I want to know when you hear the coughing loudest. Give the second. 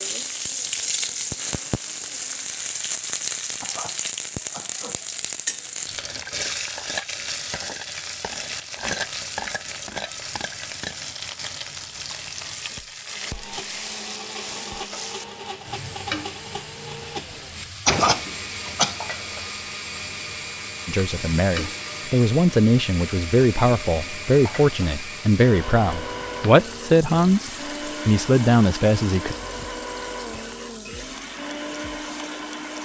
18 s.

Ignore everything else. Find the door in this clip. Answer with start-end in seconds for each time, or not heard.
17.3-18.8.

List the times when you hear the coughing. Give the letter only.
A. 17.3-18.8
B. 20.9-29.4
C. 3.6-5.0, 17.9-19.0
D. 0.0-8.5
C.